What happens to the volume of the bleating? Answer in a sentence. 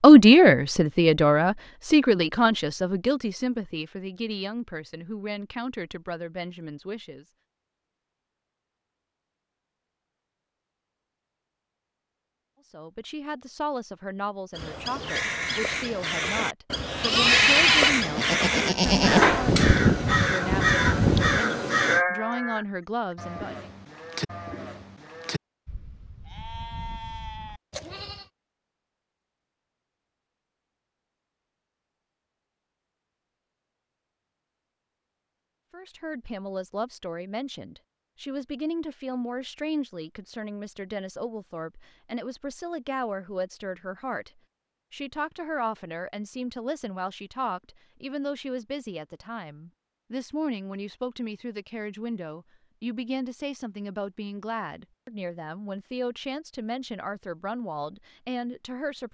The loudness of the bleating goes down.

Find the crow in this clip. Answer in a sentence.
The crow can be heard from 14.5 to 22.1 s.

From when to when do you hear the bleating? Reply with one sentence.
The bleating can be heard from 16.8 to 28.3 s.